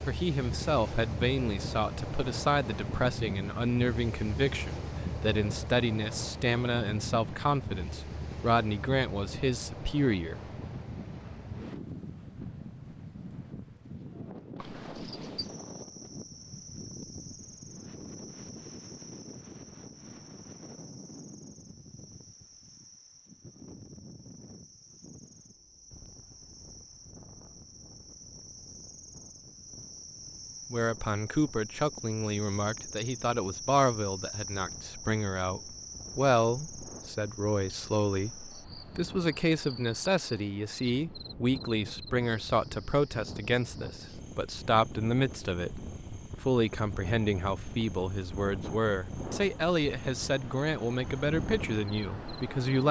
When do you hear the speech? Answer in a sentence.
You can hear the speech from 0.1 to 10.4 s, from 30.7 to 45.7 s and from 46.4 to 52.8 s.